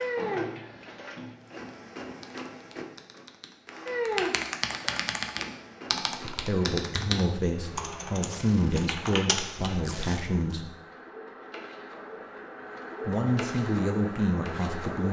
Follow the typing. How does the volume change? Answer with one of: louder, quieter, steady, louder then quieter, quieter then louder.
louder.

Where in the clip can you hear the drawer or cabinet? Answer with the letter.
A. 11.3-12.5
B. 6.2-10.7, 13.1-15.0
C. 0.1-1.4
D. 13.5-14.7
C.